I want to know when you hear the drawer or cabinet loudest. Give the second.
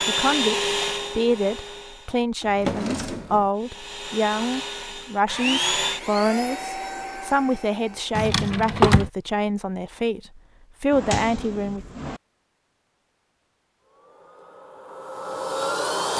9 s.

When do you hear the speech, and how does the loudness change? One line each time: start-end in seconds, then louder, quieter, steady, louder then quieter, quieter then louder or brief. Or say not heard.
0.1-11.8 steady.